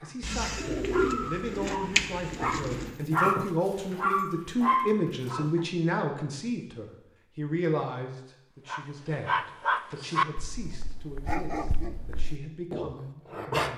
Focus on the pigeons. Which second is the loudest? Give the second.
2 s.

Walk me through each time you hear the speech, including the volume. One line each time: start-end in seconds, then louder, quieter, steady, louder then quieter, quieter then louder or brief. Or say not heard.
0.0-13.7 louder then quieter.